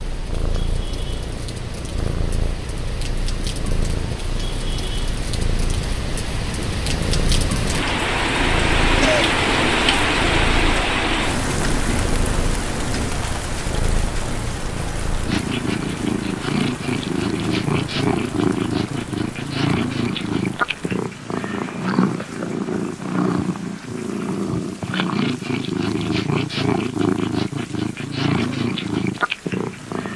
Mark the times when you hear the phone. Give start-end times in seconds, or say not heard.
not heard.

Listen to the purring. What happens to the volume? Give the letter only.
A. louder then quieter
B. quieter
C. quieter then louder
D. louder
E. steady
D.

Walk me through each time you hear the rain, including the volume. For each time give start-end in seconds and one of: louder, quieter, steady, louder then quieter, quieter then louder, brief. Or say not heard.
0.0-30.1 louder then quieter.